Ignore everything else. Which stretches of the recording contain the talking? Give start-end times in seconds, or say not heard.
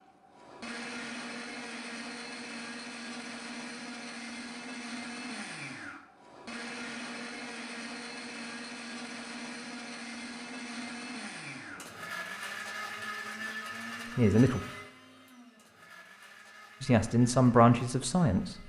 14.1-14.6, 16.8-18.6.